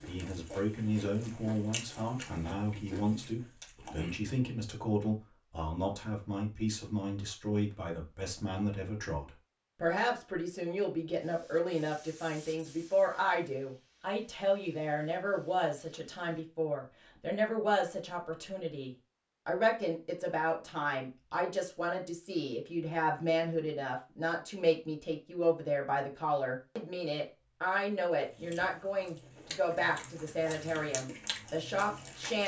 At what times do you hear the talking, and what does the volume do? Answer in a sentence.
You can hear the talking from 0.0 to 32.4 s, at a steady volume.